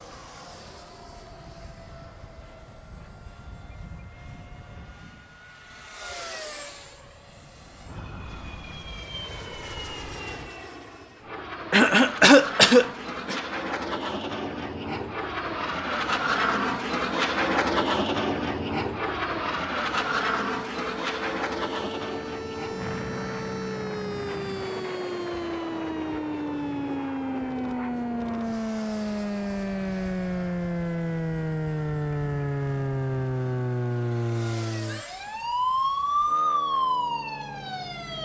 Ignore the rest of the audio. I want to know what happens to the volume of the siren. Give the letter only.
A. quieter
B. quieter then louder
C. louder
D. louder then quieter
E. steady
C.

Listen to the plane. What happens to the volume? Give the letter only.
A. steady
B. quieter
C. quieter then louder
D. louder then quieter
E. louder
D.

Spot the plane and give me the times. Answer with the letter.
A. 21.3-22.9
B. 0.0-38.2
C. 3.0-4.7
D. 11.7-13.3
B.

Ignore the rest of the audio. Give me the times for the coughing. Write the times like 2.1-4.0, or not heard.
11.7-13.3.